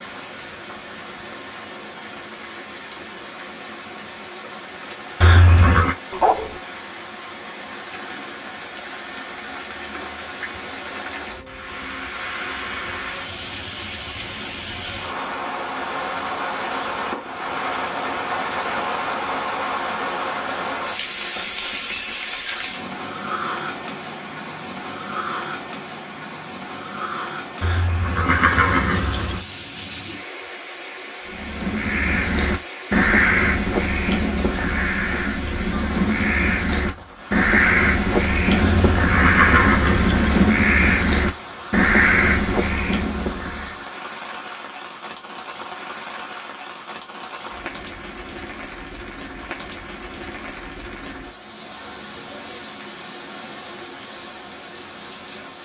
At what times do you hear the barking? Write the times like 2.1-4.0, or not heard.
6.1-6.6.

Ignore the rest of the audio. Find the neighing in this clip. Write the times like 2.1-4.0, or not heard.
5.2-6.0, 27.6-29.4, 38.5-40.4.